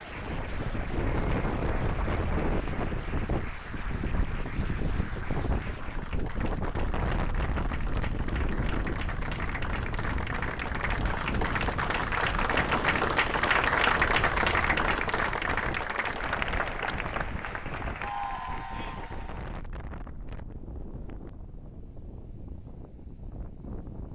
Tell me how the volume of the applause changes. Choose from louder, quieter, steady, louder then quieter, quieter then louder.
louder then quieter.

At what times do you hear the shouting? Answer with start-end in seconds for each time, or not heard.
not heard.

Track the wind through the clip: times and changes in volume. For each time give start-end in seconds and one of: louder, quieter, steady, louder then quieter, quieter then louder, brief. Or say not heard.
0.0-24.0 quieter.